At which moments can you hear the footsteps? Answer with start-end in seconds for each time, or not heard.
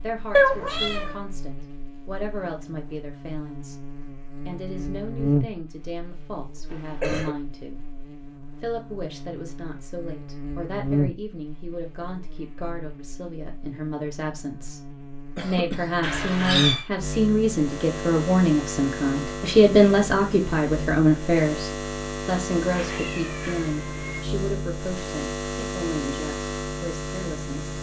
not heard.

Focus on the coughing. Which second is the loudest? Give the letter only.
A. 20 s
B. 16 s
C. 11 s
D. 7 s
D.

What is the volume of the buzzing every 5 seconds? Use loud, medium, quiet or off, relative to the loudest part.
medium, loud, loud, loud, loud, loud.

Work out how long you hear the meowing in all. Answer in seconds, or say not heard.
3 s.